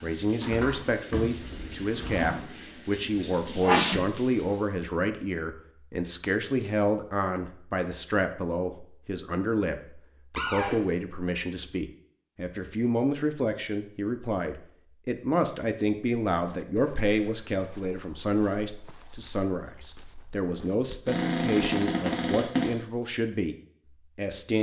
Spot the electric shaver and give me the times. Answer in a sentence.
You can't hear the electric shaver here.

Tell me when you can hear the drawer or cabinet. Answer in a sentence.
The drawer or cabinet can be heard from 0.4 to 2.4 s, from 10.3 to 10.8 s and from 21.1 to 22.8 s.